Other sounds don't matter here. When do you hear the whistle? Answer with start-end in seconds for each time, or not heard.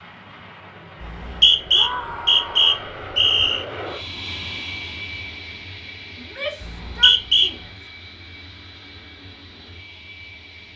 1.0-3.6, 6.6-7.5.